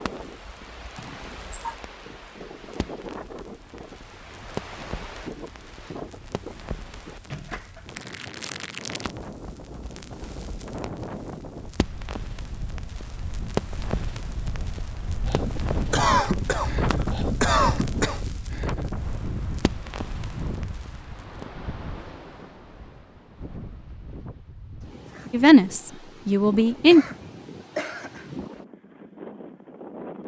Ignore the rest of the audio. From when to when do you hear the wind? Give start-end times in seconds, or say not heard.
0.0-30.2.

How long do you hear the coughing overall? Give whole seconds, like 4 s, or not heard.
5 s.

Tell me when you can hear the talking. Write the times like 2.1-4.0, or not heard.
25.3-27.1.